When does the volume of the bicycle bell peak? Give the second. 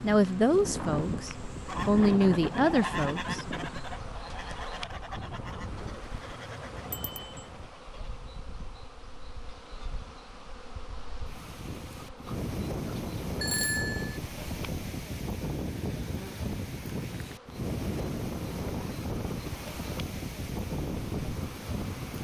14 s.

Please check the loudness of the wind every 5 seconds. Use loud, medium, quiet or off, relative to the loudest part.
loud, medium, loud, loud, loud.